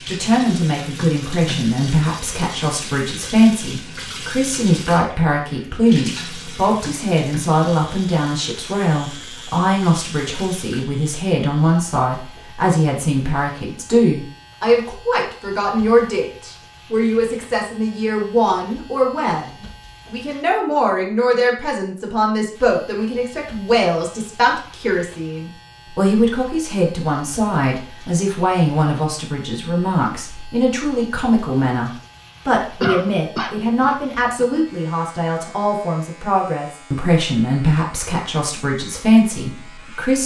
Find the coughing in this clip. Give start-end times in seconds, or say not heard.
32.8-34.5.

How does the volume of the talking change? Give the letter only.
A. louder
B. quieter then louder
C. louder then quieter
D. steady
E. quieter
D.